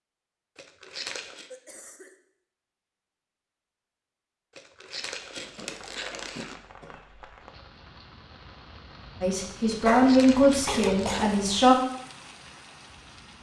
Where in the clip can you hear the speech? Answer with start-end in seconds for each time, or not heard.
9.2-11.8.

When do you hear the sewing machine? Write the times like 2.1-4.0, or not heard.
not heard.